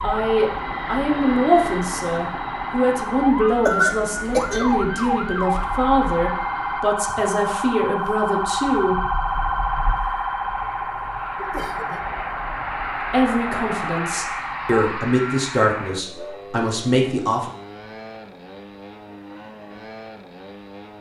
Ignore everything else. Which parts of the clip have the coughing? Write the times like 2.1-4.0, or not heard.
3.5-4.8.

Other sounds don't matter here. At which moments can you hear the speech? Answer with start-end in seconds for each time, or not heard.
0.0-8.9, 13.1-17.5.